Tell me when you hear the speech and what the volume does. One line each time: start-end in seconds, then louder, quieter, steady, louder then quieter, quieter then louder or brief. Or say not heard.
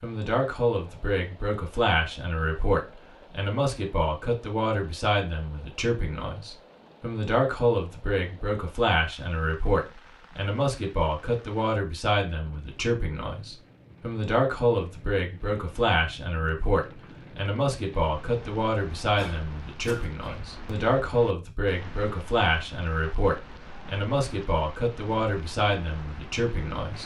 0.0-27.0 steady.